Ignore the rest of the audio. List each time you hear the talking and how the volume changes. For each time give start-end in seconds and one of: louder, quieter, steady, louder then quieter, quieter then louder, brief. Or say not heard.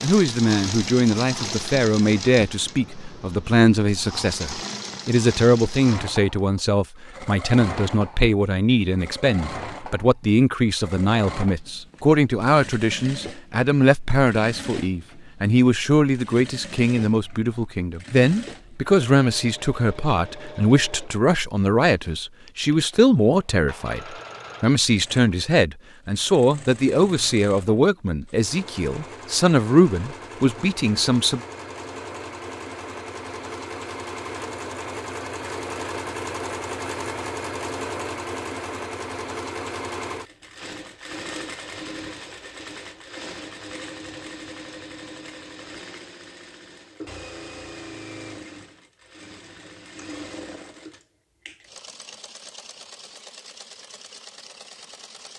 0.0-31.4 steady.